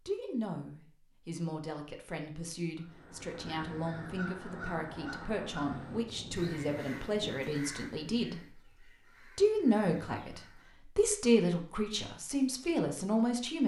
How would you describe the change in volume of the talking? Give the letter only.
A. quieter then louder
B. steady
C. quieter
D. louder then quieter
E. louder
E.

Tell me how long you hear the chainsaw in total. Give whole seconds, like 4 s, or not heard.
not heard.